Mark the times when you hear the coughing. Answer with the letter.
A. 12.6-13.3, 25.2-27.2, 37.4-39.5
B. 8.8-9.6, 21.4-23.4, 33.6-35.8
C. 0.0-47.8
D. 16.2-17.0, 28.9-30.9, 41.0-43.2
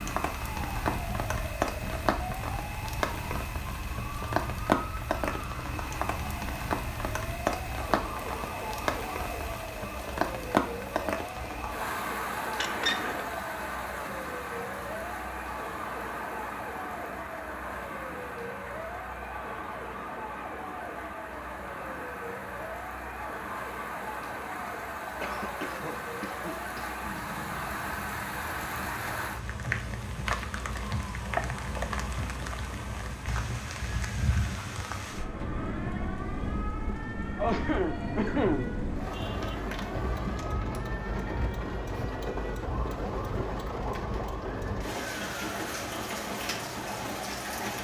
A.